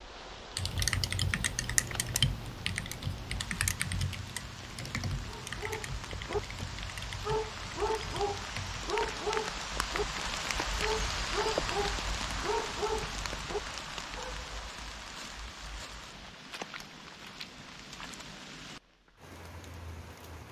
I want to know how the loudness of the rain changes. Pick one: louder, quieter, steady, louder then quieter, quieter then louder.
louder then quieter.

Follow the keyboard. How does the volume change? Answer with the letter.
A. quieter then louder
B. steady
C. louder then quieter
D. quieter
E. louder
D.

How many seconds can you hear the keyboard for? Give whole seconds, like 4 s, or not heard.
8 s.